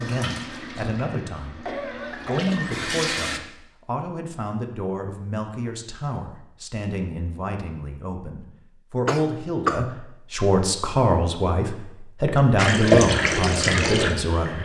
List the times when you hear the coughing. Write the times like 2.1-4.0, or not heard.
1.6-2.5, 9.1-9.8.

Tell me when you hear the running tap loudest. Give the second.
13 s.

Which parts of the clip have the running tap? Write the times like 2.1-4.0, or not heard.
0.0-3.4, 12.6-14.5.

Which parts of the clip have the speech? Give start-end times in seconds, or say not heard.
0.0-14.5.